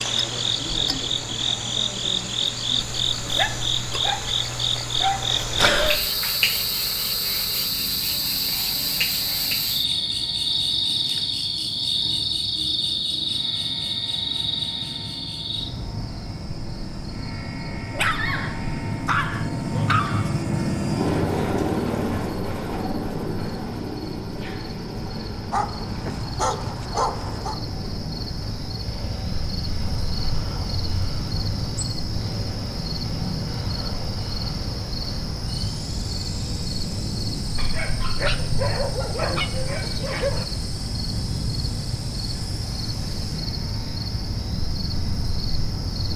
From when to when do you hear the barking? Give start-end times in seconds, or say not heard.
3.4-5.3, 17.8-20.4, 25.5-27.6, 37.5-40.5.